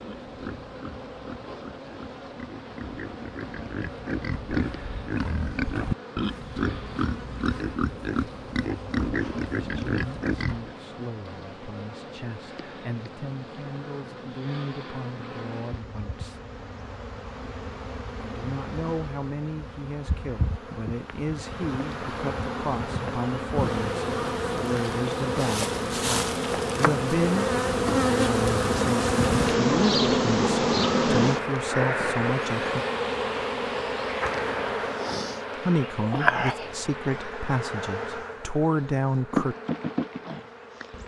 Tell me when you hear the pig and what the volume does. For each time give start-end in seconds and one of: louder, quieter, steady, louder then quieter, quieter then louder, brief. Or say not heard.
0.0-10.8 louder.